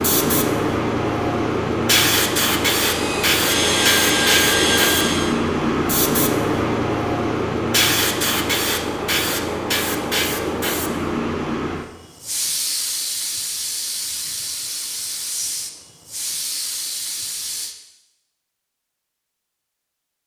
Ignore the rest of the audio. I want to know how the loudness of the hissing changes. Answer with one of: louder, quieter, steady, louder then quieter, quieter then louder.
quieter.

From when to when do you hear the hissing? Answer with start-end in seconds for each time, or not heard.
0.0-17.8.